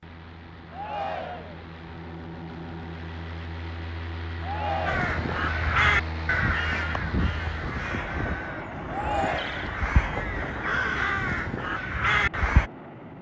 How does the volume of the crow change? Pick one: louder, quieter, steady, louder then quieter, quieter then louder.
quieter then louder.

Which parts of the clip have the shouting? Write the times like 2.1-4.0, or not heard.
0.7-1.6, 4.4-5.1, 8.8-9.5.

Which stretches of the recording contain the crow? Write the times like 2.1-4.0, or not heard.
4.8-12.7.